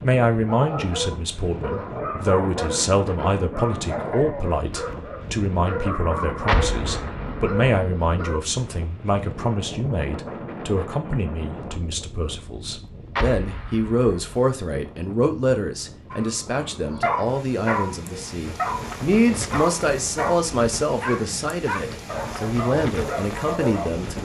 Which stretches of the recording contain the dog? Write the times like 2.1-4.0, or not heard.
0.5-8.4, 16.1-24.0.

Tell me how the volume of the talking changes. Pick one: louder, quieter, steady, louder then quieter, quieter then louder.
steady.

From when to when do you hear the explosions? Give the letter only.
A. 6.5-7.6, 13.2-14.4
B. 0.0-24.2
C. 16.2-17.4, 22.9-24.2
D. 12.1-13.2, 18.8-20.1
A.